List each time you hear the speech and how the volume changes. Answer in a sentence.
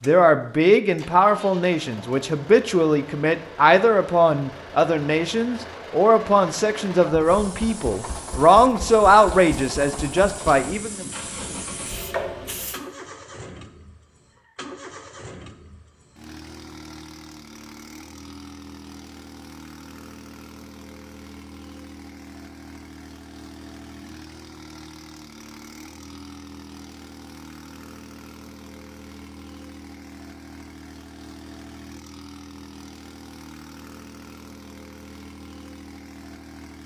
The speech can be heard from 0.1 to 11.1 s, at a steady volume.